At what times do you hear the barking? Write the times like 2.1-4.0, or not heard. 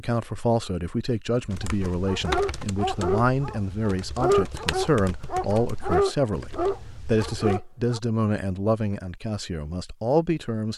1.6-8.0.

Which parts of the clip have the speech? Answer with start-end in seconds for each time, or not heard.
0.0-10.7.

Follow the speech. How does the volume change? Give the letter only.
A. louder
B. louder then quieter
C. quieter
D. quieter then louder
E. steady
E.